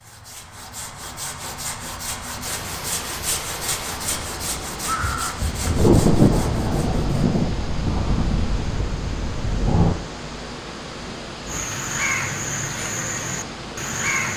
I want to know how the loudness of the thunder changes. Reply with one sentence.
The volume of the thunder goes down.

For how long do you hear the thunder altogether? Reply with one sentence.
The thunder can be heard for 4 seconds in total.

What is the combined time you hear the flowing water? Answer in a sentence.
You can hear the flowing water for 12 seconds altogether.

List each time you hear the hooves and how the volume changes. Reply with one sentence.
You can't hear the hooves here.